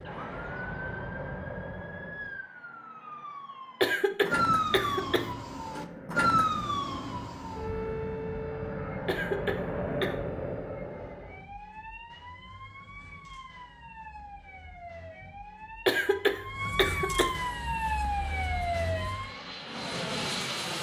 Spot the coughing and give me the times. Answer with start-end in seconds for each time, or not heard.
3.8-5.2, 9.1-10.2, 15.8-17.3.